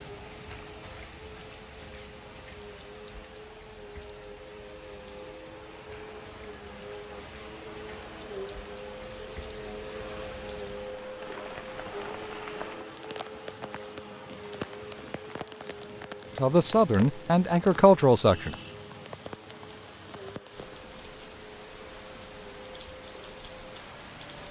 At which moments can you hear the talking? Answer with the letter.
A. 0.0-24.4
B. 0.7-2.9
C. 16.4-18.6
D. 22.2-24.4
C.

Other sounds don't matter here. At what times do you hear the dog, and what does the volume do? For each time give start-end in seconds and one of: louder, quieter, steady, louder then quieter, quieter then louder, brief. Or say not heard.
not heard.